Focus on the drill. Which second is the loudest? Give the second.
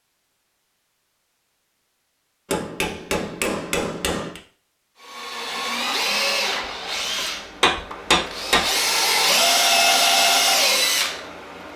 10 s.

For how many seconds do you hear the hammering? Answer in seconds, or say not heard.
4 s.